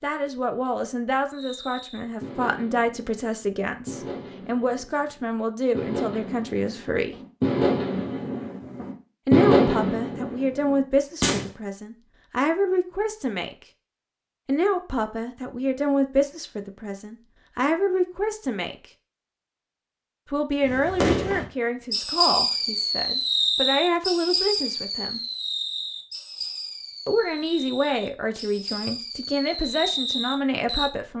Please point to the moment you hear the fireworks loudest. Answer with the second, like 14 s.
9 s.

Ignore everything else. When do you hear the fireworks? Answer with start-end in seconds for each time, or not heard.
1.3-11.5, 20.6-30.9.